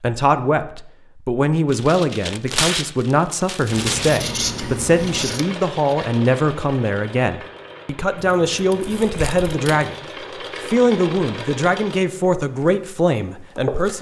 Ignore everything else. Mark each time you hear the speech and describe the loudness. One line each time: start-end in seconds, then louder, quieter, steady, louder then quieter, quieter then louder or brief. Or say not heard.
0.0-13.9 steady.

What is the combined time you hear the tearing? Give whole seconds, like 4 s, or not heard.
3 s.